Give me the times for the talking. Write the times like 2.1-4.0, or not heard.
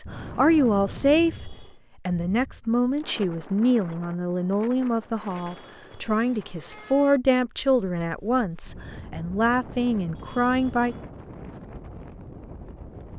0.0-10.9.